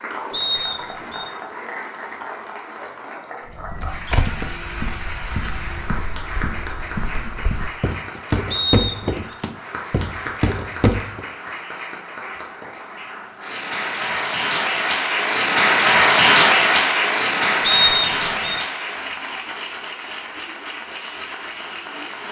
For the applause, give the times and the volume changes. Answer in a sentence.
You can hear the applause from 0.0 to 22.2 s, getting louder then quieter.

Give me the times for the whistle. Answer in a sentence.
You can hear the whistle from 0.3 to 1.3 s, from 8.5 to 9.2 s and from 17.6 to 18.6 s.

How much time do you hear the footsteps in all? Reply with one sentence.
The footsteps can be heard for 8 seconds in total.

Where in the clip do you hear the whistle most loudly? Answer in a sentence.
The volume of the whistle peaks at 18 seconds.